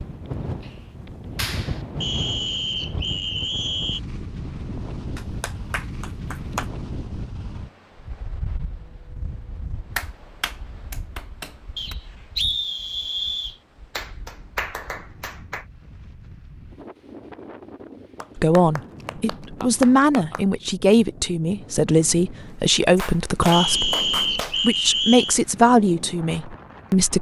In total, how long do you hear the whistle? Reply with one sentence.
The whistle can be heard for 6 seconds in total.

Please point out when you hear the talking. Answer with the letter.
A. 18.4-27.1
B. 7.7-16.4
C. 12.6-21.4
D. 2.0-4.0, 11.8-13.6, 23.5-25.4
A.